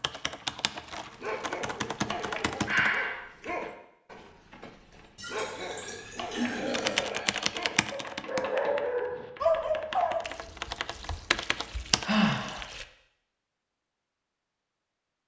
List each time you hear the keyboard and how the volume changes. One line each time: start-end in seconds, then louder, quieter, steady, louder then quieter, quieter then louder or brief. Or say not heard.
0.0-3.0 brief
6.7-12.1 quieter then louder.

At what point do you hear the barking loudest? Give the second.
10 s.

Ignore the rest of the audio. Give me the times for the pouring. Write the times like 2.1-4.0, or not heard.
0.1-2.8, 5.2-7.0, 10.2-12.8.